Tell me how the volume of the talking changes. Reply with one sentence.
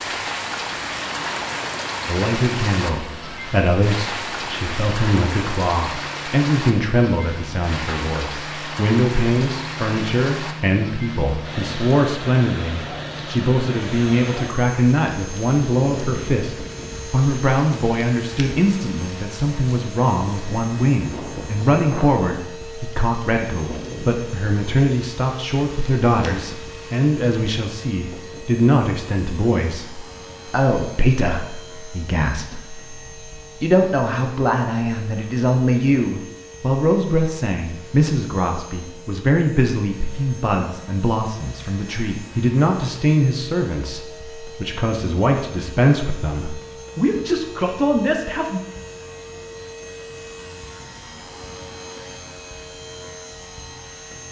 The volume of the talking stays about the same.